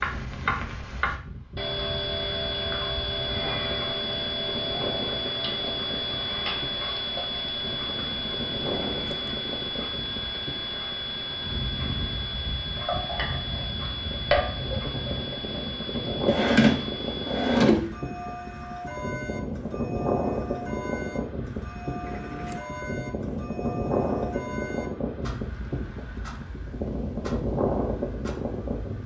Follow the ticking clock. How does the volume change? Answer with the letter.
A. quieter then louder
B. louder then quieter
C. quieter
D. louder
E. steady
C.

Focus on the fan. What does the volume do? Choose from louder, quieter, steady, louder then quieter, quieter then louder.
louder.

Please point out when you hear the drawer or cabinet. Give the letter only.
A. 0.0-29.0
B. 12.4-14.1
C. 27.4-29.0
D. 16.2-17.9
D.